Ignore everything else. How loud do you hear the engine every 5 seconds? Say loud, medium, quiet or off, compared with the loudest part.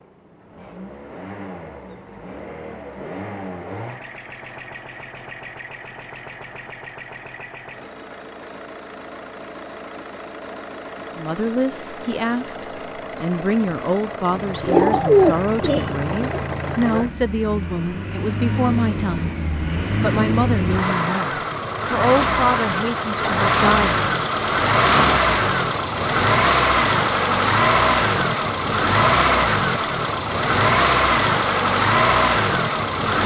quiet, quiet, quiet, medium, loud, loud, loud.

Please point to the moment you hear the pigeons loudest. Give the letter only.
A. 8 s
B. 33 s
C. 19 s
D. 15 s
D.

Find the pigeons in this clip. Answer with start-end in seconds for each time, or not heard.
14.6-16.4.